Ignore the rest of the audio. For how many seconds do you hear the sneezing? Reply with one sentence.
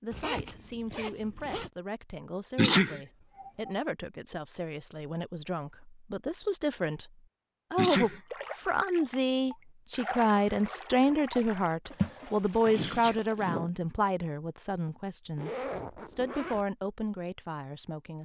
The sneezing can be heard for 3 seconds in total.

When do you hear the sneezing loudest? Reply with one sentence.
The volume of the sneezing peaks at 3 seconds.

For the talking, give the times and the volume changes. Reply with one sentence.
The talking can be heard from 0.0 to 18.2 s, getting louder then quieter.